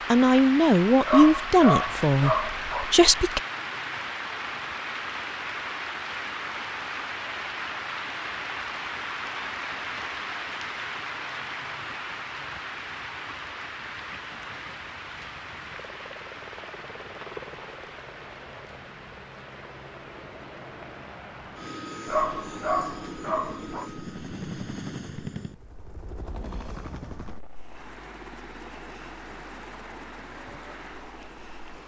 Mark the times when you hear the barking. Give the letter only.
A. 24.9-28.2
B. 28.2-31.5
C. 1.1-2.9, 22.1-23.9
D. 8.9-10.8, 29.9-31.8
C.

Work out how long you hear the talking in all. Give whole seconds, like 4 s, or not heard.
3 s.